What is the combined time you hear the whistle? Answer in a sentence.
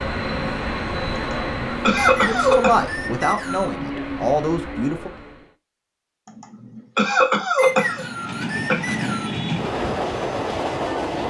The whistle can be heard for 4 seconds in total.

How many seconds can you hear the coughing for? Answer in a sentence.
The coughing can be heard for 4 seconds in total.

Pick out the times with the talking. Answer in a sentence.
You can hear the talking from 2.2 to 5.1 s.